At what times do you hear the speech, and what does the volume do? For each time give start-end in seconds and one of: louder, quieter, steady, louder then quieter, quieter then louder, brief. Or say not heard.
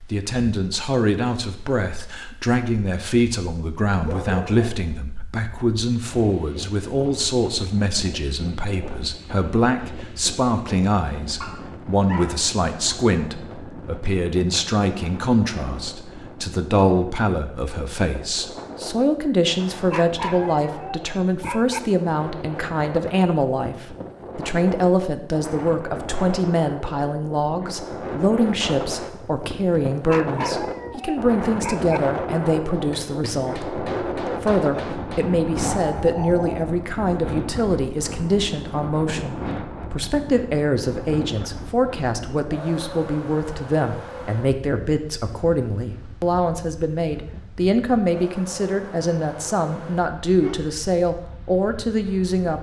0.0-52.5 steady.